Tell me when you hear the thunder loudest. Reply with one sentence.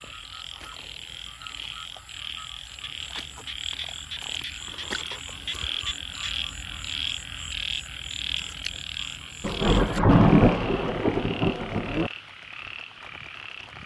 The loudest moment of the thunder is at 10 seconds.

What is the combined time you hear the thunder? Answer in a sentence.
You can hear the thunder for 3 seconds altogether.